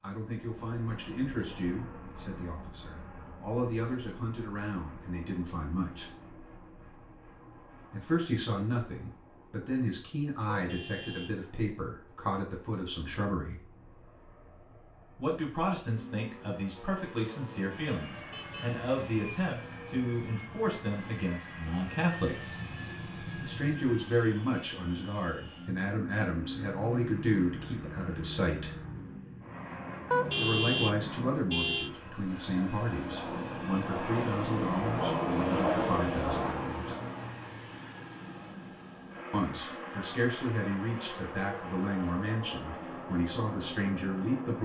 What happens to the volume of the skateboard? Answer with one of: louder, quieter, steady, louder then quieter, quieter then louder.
louder then quieter.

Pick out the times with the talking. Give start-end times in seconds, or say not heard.
0.0-6.0, 7.9-13.6, 15.2-22.6, 23.4-28.8, 30.4-37.0, 39.3-44.6.